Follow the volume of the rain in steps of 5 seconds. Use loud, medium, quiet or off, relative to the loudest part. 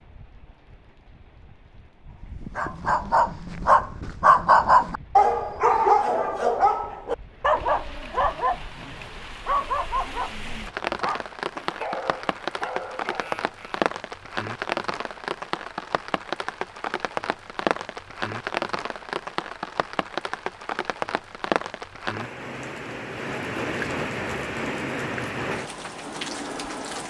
quiet, quiet, loud, loud, loud, loud.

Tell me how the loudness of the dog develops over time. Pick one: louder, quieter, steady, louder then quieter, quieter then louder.
quieter.